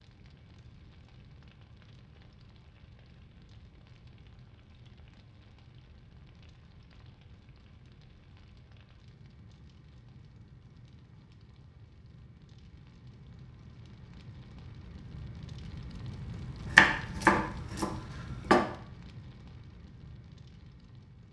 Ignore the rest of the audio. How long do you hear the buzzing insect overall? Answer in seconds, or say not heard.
not heard.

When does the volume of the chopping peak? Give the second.
17 s.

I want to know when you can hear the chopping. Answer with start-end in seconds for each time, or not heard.
16.6-18.6.